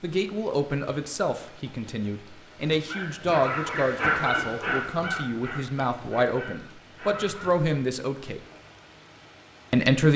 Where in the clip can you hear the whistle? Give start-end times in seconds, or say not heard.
not heard.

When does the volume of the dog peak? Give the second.
4 s.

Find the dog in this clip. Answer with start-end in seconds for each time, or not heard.
2.9-7.5.